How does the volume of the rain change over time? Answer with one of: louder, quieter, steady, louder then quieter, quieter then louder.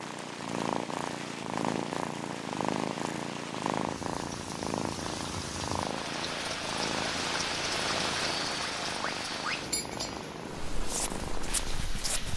louder then quieter.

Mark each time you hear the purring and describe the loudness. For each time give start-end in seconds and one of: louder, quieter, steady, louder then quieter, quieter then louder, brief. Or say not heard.
0.0-12.1 quieter.